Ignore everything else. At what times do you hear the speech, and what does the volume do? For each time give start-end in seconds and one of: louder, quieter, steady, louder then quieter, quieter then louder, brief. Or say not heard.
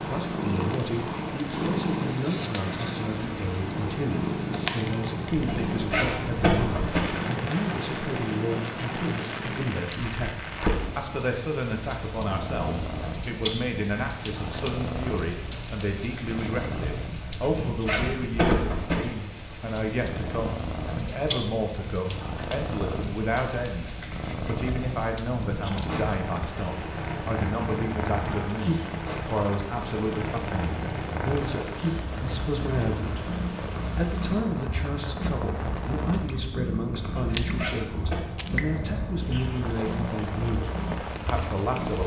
0.0-42.0 steady.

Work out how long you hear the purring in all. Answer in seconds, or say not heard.
42 s.